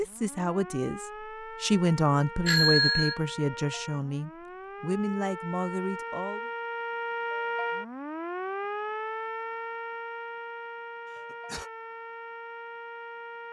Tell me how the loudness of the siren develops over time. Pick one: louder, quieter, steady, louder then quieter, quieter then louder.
louder then quieter.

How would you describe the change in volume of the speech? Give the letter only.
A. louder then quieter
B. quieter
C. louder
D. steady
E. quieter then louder
A.